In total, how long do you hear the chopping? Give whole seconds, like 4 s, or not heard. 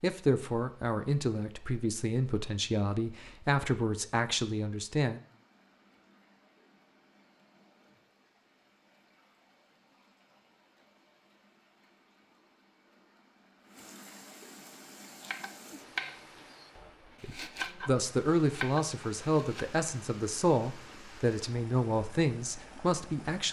4 s.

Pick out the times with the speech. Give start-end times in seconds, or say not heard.
0.0-5.2, 17.2-23.4.